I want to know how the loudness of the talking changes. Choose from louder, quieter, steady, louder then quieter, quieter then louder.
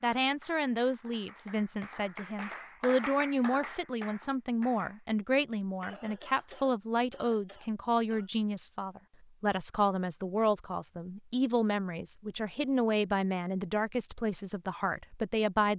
steady.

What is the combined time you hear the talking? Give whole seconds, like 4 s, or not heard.
16 s.